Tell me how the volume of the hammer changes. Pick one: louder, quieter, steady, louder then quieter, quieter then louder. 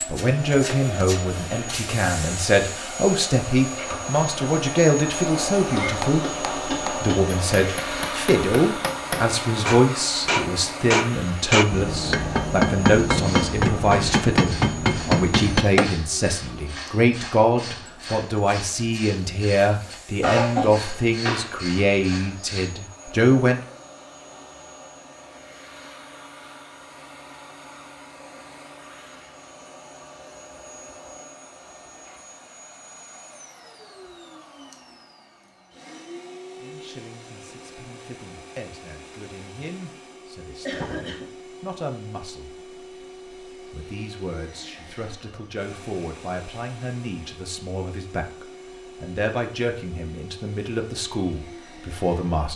louder.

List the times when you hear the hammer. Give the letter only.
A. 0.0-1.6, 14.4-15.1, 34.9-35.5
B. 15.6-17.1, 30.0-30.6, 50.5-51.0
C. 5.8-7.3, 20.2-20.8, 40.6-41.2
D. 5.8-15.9
D.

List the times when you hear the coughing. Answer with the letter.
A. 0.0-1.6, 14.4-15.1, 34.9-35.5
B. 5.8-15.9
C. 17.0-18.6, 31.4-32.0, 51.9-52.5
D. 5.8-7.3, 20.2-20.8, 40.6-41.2
D.